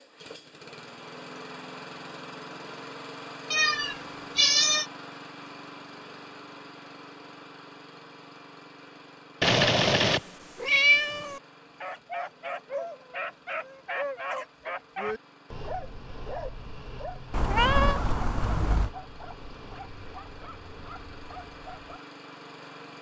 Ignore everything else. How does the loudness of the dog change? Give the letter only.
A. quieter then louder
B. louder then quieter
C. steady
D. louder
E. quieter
E.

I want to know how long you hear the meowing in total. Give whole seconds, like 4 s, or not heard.
5 s.